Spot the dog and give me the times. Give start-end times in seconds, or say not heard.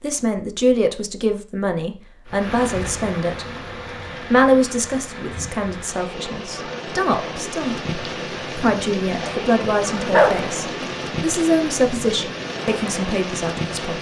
9.2-10.8.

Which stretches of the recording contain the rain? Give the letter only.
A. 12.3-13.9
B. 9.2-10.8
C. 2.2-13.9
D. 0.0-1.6
C.